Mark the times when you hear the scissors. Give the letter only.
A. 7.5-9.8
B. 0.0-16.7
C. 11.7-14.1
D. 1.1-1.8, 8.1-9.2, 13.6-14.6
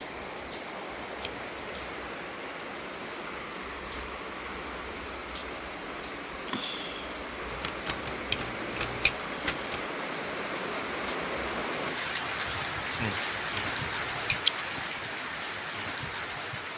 D.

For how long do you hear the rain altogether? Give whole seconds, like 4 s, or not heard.
17 s.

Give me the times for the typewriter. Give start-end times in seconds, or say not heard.
7.5-9.8.